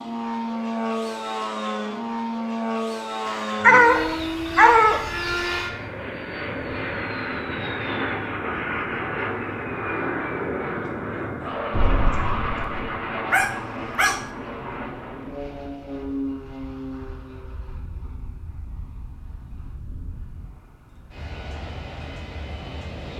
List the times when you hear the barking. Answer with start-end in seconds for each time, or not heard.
3.2-5.2, 13.3-14.3.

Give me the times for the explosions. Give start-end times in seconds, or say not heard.
11.7-12.8.